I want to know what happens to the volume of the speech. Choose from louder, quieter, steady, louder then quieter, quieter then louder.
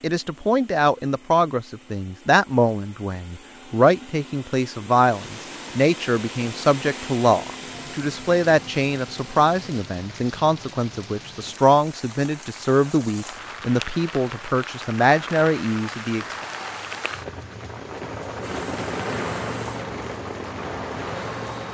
steady.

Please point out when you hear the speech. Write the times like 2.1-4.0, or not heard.
0.0-16.4.